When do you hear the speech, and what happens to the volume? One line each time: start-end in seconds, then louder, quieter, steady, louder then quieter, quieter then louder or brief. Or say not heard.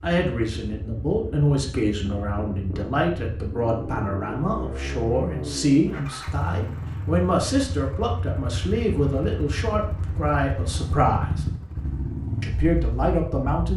0.0-11.4 steady
12.4-13.7 brief.